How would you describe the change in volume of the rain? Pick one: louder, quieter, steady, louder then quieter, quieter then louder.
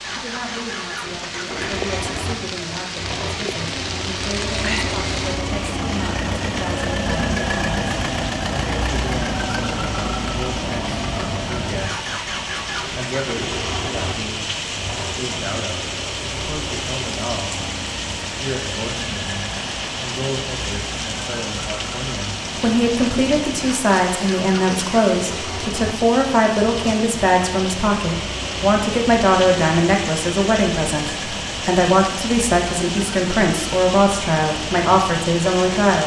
steady.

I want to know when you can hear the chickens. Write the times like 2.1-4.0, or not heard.
not heard.